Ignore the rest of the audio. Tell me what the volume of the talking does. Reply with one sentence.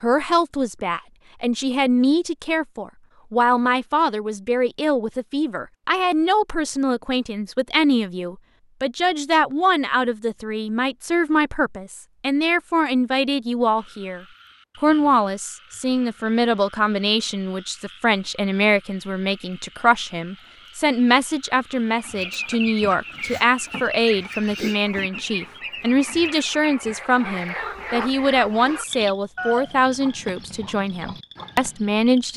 The volume of the talking stays about the same.